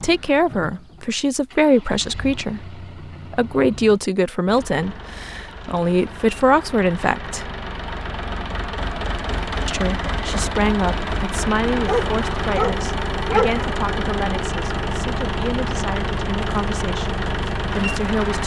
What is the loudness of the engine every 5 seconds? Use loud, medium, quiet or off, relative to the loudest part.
quiet, medium, loud, loud.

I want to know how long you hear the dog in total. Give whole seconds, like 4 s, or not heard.
2 s.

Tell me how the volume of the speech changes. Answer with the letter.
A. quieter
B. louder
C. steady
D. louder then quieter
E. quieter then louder
A.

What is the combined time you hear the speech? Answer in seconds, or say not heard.
16 s.